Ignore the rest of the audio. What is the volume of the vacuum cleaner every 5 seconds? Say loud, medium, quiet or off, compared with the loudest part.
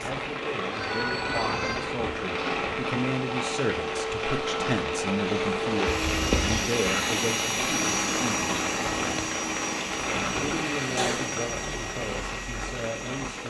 medium, loud, medium.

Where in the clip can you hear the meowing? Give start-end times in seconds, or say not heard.
0.7-1.9, 6.0-6.7, 10.9-11.8.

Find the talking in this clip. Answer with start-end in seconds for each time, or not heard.
0.0-8.5, 10.3-13.4.